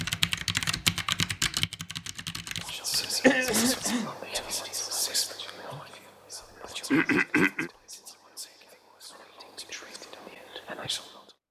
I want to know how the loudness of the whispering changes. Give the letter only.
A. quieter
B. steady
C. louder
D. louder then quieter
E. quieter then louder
E.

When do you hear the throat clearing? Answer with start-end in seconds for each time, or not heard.
3.2-4.1, 6.9-7.7.